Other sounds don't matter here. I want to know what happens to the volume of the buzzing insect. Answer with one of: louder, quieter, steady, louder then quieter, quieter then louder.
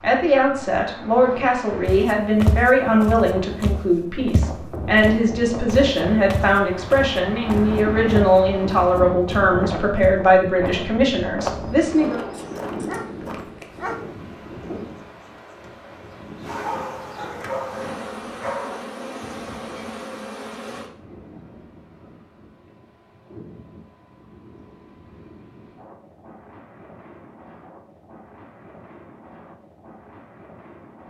louder.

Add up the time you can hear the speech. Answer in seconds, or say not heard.
12 s.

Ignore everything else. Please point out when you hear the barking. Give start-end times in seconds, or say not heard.
12.3-14.0, 16.4-18.9.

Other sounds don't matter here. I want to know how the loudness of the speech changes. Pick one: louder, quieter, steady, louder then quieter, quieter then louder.
steady.